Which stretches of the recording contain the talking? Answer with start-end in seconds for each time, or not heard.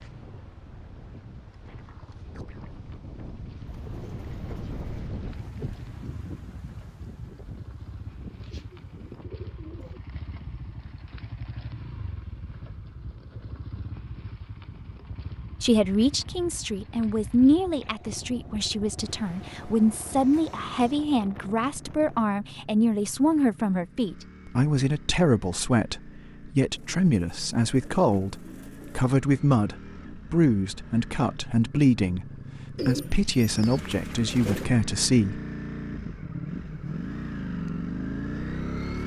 15.6-35.4.